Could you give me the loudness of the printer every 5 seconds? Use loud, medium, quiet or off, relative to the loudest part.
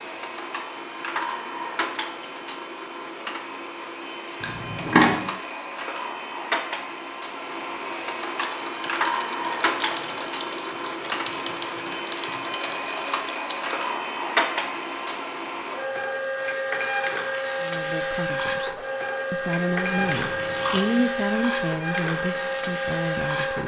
medium, loud, loud, loud, loud.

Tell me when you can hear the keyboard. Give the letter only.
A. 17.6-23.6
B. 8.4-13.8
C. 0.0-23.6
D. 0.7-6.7
B.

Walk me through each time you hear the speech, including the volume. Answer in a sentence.
You can hear the speech from 17.6 to 23.6 s, getting louder then quieter.